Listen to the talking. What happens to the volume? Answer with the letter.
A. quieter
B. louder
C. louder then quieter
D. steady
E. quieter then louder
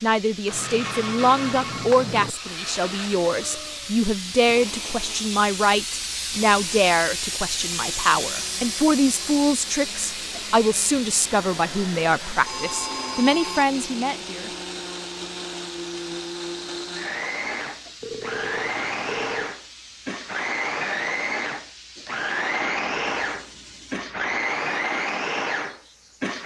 D.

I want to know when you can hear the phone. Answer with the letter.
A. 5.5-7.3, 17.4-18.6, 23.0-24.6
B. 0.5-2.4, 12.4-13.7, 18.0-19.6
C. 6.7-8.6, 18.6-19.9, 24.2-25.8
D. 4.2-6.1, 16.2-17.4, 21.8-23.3
B.